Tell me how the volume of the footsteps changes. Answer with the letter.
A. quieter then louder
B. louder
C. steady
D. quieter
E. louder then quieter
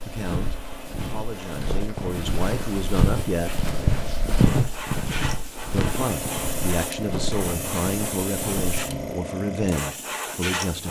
E.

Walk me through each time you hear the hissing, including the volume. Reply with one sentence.
The hissing can be heard from 0.0 to 10.8 s, getting louder.